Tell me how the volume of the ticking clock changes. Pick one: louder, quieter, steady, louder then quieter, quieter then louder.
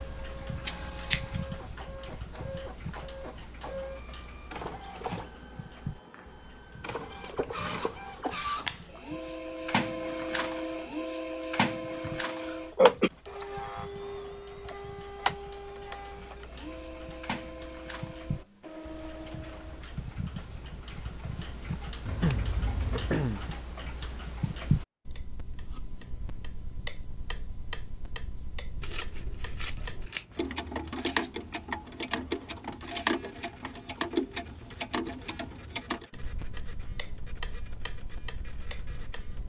quieter then louder.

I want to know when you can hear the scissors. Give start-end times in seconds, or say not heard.
0.7-1.4, 22.1-23.1, 28.8-30.4.